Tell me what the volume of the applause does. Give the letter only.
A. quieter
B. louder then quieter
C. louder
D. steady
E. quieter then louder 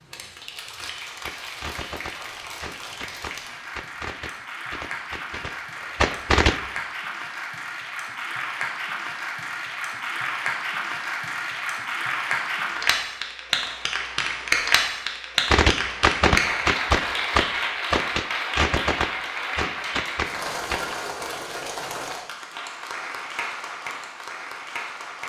B.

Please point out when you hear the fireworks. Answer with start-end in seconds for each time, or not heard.
1.2-6.6, 15.5-20.9.